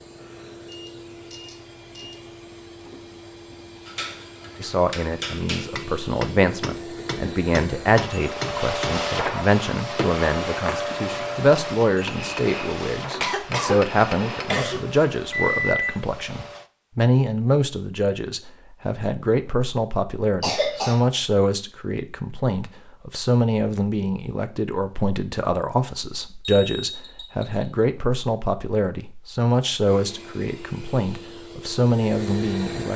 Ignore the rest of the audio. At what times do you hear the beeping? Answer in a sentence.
The beeping can be heard from 0.1 to 2.4 s, from 15.3 to 15.8 s and from 26.4 to 27.6 s.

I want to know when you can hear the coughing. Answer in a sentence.
The coughing can be heard from 13.2 to 14.8 s and from 20.4 to 21.0 s.